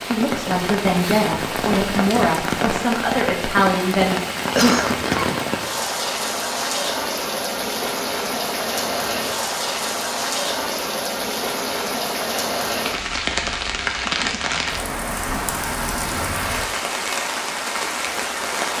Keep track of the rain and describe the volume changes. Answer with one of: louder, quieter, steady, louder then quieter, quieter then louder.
steady.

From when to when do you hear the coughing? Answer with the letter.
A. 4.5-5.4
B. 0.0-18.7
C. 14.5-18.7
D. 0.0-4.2
A.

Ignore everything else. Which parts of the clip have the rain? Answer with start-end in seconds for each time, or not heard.
0.0-18.7.